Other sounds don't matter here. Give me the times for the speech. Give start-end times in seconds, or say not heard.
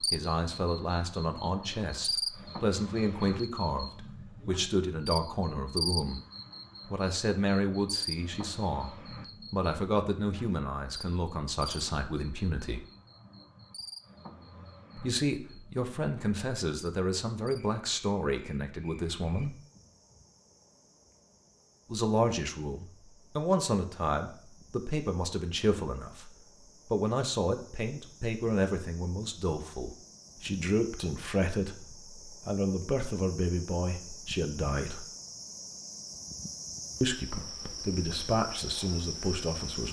0.0-6.2, 6.8-12.8, 14.9-19.6, 21.9-26.3, 26.9-35.0, 37.0-39.8.